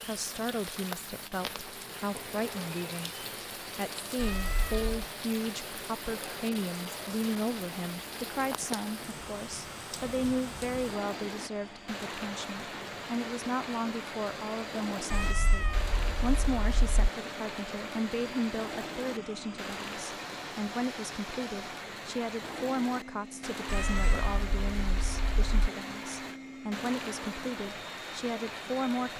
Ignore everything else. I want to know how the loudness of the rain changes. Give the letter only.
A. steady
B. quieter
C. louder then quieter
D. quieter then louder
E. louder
A.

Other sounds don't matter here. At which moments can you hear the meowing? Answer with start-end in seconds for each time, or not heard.
4.2-5.0, 15.1-16.9, 23.6-25.7.